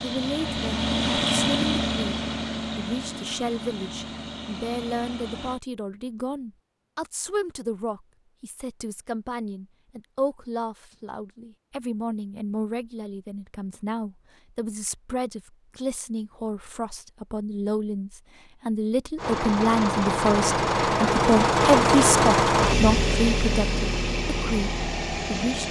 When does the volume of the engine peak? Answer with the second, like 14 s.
22 s.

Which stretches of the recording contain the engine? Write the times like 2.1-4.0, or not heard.
0.0-5.6, 19.1-25.6.